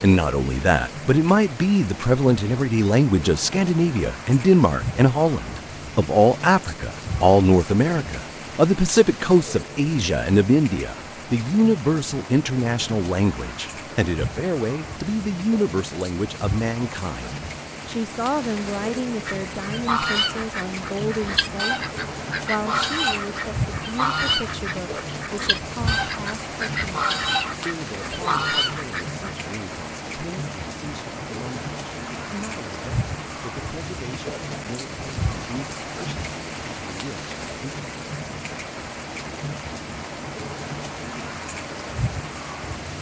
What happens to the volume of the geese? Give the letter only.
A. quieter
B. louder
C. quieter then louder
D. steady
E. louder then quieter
D.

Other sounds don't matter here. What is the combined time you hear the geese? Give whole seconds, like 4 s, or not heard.
10 s.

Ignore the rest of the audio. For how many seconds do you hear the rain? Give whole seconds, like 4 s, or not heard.
43 s.